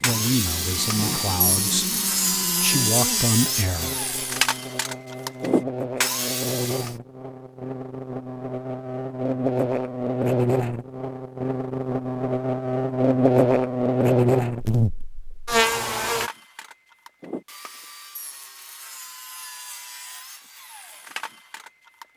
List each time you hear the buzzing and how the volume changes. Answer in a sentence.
You can hear the buzzing from 0.0 to 16.3 s, getting louder.